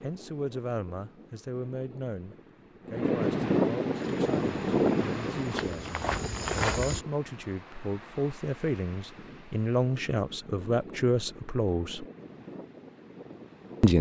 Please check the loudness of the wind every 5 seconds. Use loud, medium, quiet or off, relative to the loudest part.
loud, medium, quiet.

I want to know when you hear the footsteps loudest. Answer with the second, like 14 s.
7 s.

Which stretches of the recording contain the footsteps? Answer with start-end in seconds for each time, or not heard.
3.9-7.0.